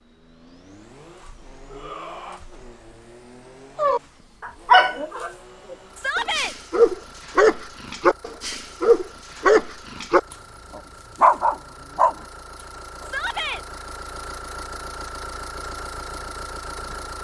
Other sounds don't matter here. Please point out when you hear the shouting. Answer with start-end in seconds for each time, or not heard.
1.6-2.4, 6.0-6.5, 13.0-13.7.